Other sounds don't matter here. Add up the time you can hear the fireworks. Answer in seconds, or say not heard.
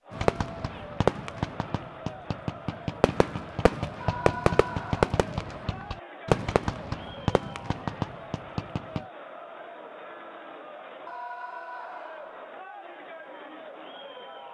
9 s.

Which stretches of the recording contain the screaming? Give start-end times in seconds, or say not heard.
4.0-5.1, 11.1-12.4.